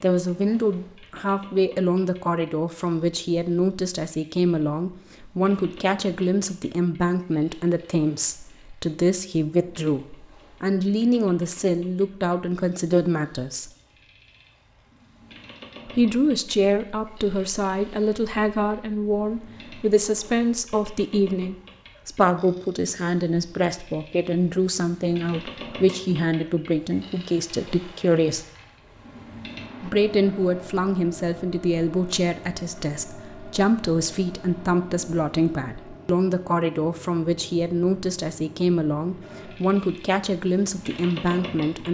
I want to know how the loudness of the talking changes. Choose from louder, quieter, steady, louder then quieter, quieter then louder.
steady.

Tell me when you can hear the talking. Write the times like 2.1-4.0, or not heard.
0.0-13.7, 15.8-28.4, 29.8-41.8.